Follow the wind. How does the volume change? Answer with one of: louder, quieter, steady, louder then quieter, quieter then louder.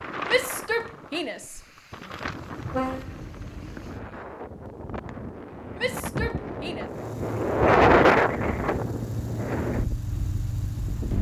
louder then quieter.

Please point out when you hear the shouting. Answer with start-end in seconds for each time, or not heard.
0.2-2.1, 5.8-6.9.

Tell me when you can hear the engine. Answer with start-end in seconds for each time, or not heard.
6.8-11.1.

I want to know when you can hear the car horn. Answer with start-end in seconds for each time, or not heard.
2.7-3.9.